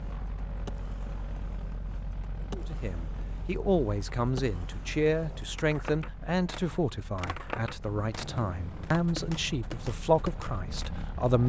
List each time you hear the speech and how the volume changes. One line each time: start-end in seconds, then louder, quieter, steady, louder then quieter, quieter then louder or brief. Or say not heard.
2.5-11.4 steady.